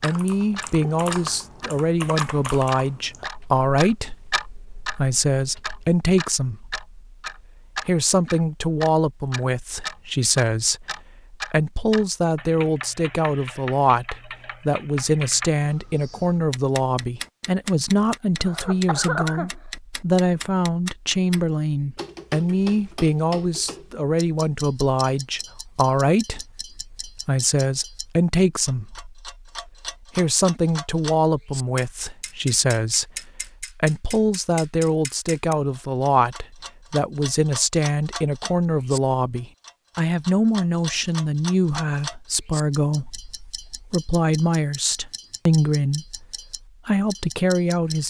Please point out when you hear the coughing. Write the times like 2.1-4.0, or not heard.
18.4-19.6.